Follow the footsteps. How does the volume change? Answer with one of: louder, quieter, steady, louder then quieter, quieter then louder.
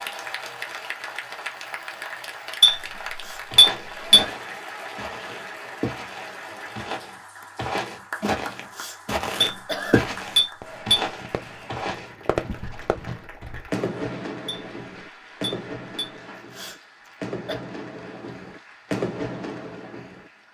louder then quieter.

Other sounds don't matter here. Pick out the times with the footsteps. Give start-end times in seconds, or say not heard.
3.5-13.7.